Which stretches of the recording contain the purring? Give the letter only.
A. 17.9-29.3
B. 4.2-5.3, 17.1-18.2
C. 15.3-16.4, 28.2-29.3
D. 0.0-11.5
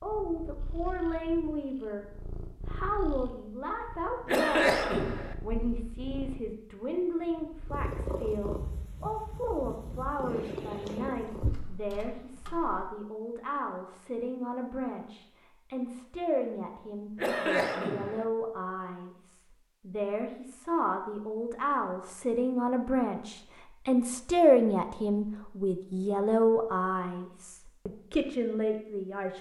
D.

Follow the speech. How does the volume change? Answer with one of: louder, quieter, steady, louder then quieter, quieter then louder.
louder.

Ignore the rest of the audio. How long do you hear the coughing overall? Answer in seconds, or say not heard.
2 s.